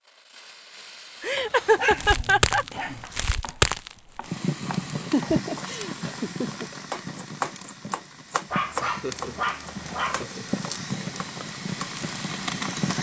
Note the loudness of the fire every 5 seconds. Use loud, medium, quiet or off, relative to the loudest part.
loud, medium, loud.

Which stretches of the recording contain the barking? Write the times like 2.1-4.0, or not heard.
1.4-3.0, 8.5-10.2.